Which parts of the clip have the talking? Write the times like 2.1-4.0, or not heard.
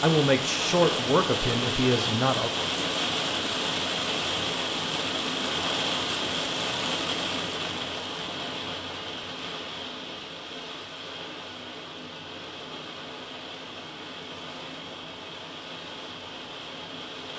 0.0-2.5.